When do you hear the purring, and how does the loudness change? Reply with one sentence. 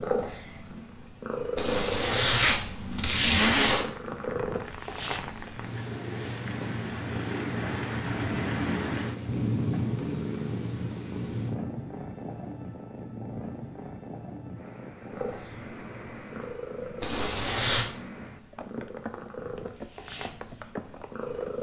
You can hear the purring from 0.0 to 21.5 s, getting quieter.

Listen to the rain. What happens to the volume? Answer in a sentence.
The loudness of the rain goes up, then down.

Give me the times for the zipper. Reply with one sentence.
The zipper can be heard from 1.6 to 3.9 s and from 17.0 to 17.9 s.